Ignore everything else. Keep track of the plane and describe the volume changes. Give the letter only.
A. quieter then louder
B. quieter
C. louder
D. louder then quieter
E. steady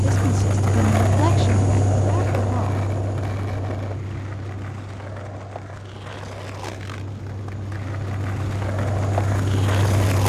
A.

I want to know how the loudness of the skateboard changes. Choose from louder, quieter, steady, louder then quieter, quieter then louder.
quieter then louder.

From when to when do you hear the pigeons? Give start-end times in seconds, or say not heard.
not heard.